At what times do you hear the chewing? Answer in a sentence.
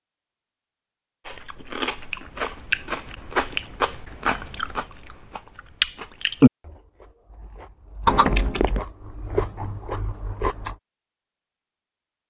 The chewing can be heard from 1.2 to 10.8 s.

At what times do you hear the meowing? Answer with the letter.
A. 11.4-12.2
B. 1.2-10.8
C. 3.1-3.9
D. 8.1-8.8
D.